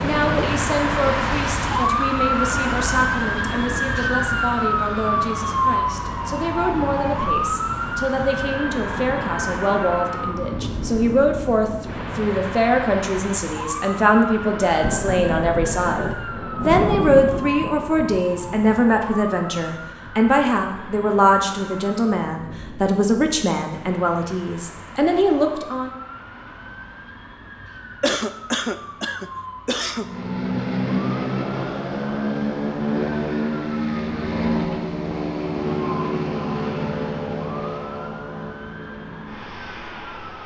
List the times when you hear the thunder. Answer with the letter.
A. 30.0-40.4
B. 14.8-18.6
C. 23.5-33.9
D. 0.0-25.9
B.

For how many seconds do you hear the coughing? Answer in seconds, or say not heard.
2 s.